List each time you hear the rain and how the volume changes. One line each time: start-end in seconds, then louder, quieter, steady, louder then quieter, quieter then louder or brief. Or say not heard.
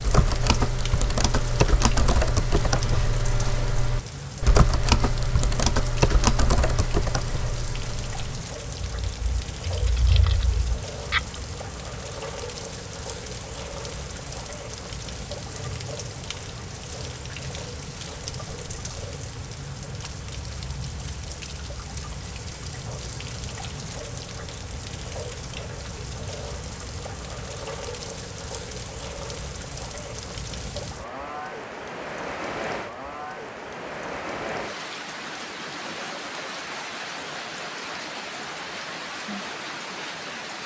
0.0-40.6 steady.